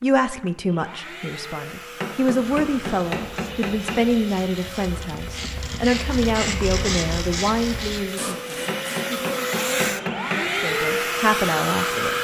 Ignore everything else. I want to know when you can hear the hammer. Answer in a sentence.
The hammer can be heard from 2.0 to 4.0 s and from 8.7 to 10.4 s.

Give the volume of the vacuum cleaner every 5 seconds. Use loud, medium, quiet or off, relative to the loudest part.
quiet, medium, loud.